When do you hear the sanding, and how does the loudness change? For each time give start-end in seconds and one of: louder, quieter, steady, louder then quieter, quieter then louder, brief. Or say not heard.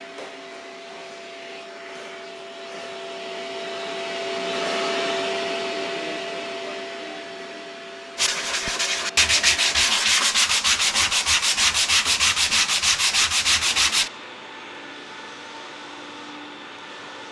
8.2-14.1 steady.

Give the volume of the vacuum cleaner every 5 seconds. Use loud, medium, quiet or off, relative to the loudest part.
loud, loud, medium, medium.